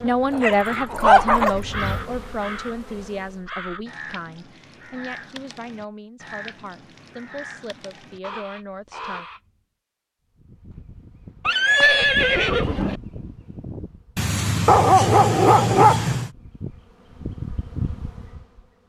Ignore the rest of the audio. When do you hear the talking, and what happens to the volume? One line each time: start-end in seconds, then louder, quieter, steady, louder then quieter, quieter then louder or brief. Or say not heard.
0.0-9.2 quieter.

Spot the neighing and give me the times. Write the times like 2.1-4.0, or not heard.
11.4-13.0.